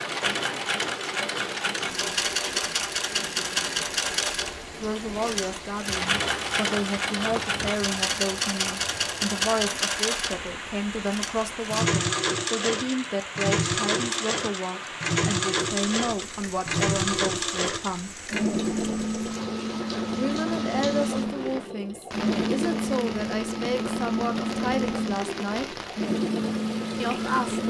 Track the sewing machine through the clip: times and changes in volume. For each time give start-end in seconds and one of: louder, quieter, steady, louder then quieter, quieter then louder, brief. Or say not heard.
0.0-27.6 steady.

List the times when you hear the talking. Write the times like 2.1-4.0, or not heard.
4.8-18.1, 20.1-25.8, 27.0-27.6.